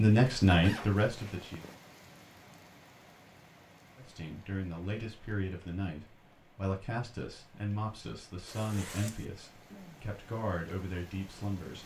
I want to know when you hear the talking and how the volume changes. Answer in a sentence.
The talking can be heard briefly from 0.0 to 1.6 s; and from 4.0 to 11.8 s, at a steady volume.